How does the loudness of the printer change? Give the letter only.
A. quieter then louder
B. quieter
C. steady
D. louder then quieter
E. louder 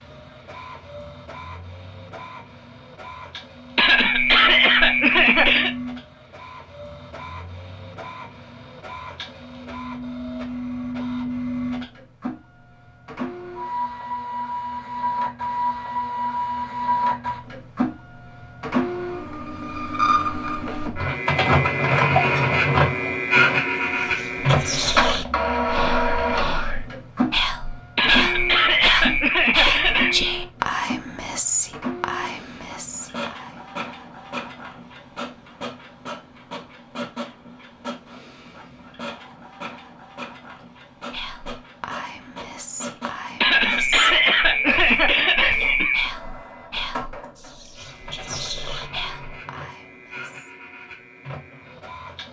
D.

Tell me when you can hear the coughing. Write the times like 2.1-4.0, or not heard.
3.8-5.8, 27.9-30.2, 43.4-46.1.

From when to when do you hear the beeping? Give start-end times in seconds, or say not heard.
not heard.